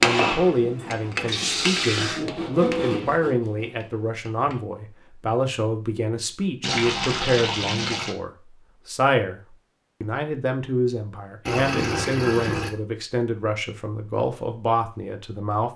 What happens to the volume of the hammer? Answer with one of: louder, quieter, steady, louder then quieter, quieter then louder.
louder then quieter.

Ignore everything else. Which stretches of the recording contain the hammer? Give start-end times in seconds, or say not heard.
0.0-4.7.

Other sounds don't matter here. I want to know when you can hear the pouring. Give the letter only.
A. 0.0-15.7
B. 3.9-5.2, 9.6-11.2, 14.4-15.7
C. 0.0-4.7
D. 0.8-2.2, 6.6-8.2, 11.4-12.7
D.